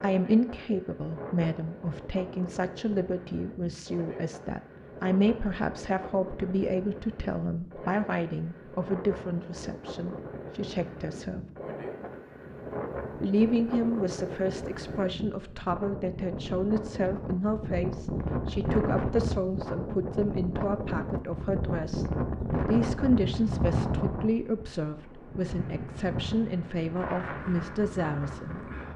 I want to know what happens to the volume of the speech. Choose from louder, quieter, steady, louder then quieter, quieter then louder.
steady.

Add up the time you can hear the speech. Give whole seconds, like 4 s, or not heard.
27 s.